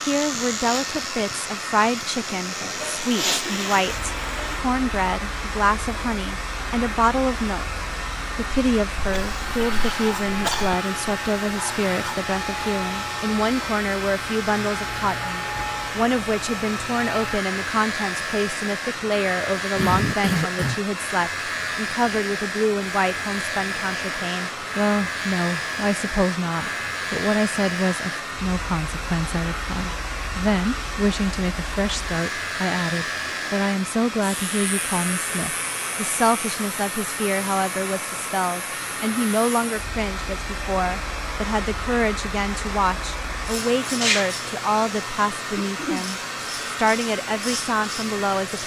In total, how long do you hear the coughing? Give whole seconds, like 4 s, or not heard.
3 s.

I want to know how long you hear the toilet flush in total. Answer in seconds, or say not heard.
2 s.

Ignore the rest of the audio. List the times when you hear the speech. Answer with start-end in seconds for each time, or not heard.
0.0-48.6.